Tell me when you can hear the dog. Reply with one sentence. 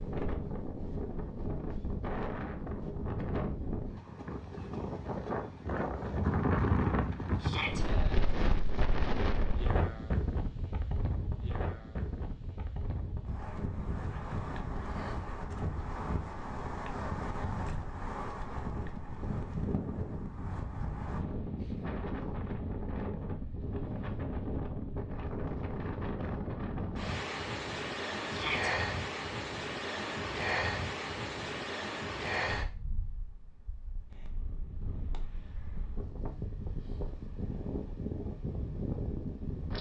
You can't hear the dog here.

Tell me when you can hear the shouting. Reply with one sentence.
You can hear the shouting from 7.4 to 7.8 s and from 28.2 to 28.7 s.